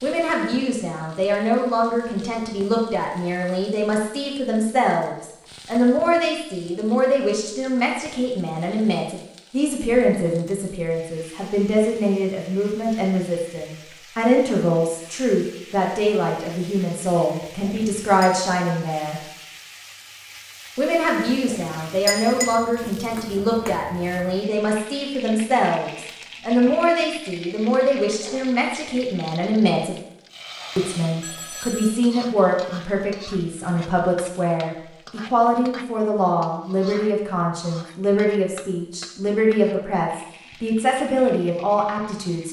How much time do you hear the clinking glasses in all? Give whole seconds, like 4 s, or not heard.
2 s.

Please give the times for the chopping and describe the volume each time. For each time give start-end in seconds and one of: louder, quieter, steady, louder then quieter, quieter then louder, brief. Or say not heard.
not heard.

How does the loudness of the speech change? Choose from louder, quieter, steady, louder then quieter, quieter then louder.
steady.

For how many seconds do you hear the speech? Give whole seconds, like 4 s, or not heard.
40 s.